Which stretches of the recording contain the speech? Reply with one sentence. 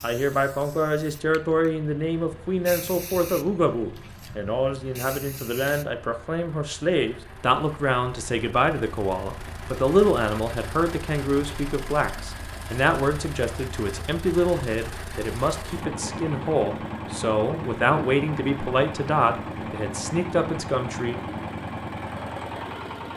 You can hear the speech from 0.0 to 21.1 s.